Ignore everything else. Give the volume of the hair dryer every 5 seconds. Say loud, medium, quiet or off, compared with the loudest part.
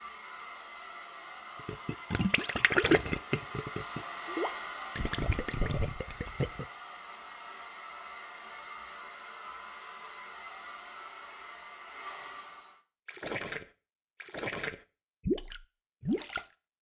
loud, loud, loud, off.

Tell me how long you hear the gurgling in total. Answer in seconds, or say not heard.
9 s.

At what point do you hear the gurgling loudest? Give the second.
3 s.